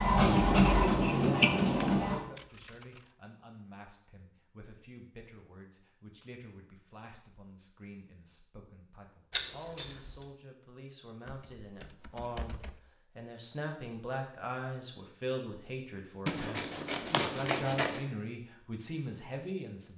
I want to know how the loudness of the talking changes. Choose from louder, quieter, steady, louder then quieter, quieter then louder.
louder.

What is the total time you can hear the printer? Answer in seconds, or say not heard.
2 s.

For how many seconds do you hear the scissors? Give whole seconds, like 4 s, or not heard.
5 s.